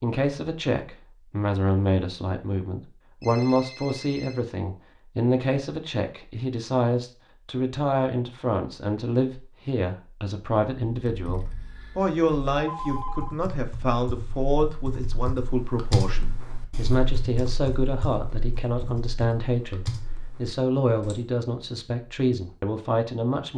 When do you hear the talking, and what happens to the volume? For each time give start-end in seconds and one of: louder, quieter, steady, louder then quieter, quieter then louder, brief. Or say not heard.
0.0-23.5 steady.